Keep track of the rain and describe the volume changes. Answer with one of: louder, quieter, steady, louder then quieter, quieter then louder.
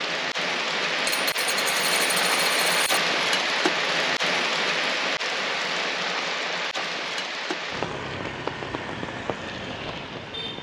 quieter.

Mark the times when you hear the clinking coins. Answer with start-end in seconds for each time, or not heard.
1.1-3.0.